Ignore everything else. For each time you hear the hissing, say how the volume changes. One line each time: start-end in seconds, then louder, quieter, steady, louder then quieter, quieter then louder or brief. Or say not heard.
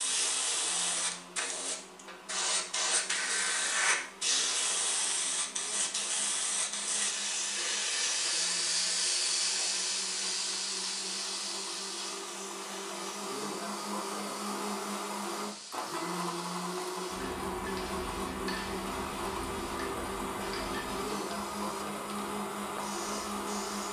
0.0-23.8 quieter.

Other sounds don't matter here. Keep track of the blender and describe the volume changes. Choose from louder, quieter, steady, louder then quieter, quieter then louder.
louder.